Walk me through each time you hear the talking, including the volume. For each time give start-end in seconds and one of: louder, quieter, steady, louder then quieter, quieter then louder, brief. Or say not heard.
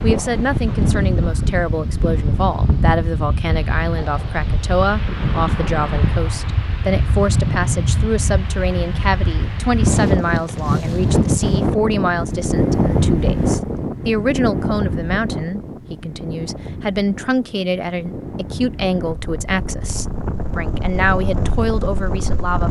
0.0-22.6 steady.